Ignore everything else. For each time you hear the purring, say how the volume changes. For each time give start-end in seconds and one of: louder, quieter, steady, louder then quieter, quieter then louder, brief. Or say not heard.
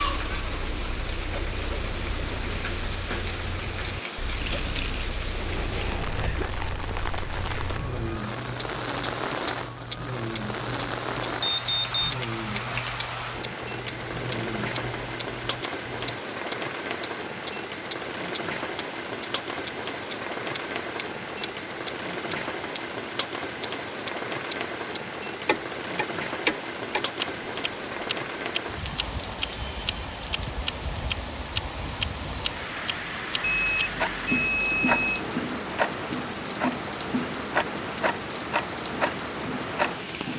not heard.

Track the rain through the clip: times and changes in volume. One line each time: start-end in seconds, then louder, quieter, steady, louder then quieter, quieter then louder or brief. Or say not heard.
0.0-40.3 steady.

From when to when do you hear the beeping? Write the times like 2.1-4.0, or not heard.
11.4-12.2, 33.4-35.2.